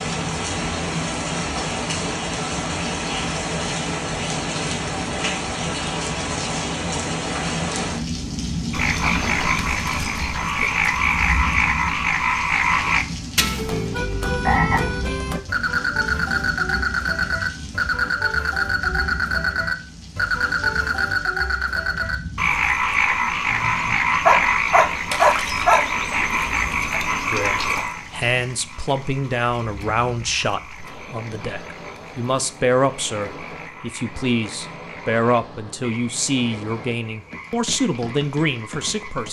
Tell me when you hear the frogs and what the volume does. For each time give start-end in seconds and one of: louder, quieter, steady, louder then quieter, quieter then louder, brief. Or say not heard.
8.7-39.2 quieter.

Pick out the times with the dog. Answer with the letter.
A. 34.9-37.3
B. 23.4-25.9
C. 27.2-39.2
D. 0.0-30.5
B.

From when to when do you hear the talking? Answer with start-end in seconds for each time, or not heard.
27.2-39.2.